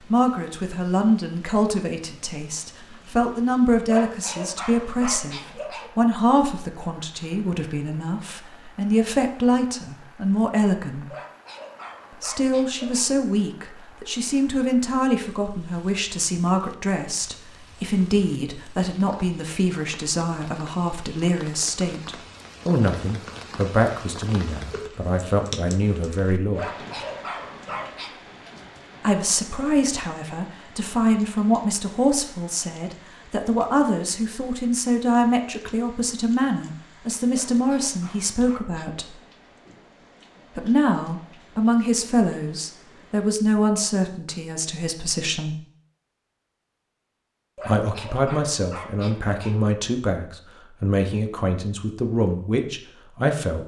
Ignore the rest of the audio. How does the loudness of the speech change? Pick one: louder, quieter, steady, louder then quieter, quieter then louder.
steady.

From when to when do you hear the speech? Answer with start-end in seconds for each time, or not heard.
0.0-11.1, 12.1-26.7, 29.0-39.1, 40.5-45.5, 47.6-53.6.